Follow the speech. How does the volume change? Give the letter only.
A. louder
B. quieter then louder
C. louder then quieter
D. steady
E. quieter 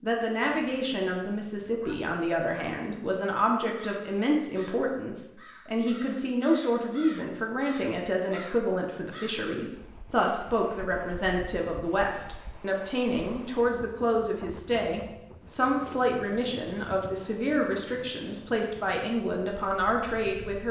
D.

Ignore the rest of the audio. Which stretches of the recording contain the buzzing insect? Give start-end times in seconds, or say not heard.
not heard.